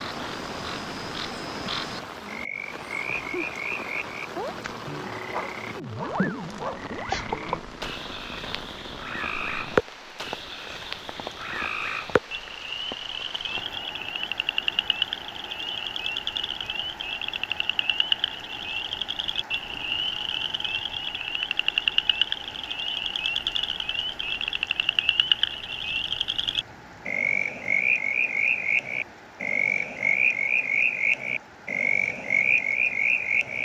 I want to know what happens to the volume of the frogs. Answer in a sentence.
The loudness of the frogs goes up.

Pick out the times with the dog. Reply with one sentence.
You can hear the dog from 5.3 to 6.8 s.